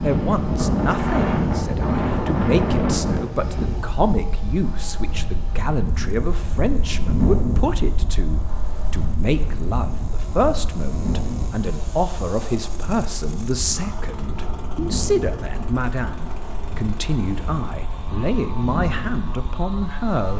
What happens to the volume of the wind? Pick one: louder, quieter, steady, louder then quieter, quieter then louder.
quieter.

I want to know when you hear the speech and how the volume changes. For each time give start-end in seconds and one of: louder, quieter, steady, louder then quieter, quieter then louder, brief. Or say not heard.
0.0-20.3 steady.